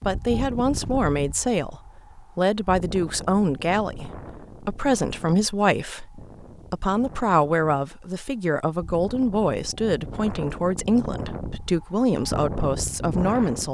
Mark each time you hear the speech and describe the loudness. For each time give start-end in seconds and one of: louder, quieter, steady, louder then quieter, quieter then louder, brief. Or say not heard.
0.1-13.6 steady.